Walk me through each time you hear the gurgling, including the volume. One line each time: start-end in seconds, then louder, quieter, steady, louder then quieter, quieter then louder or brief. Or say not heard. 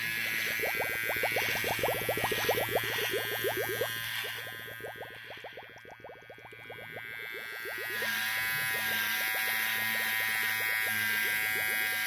0.0-12.0 quieter.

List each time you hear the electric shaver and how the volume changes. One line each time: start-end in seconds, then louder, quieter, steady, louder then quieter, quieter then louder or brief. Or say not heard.
0.0-12.0 quieter then louder.